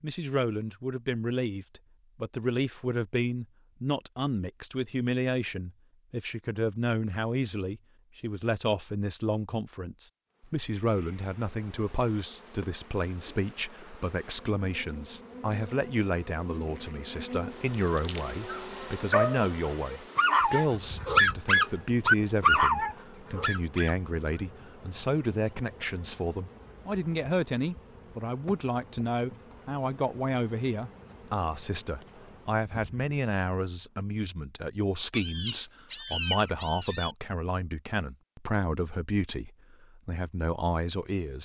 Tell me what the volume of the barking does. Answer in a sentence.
The loudness of the barking goes up, then down.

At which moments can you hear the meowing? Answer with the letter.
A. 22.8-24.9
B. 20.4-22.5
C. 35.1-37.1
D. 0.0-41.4
C.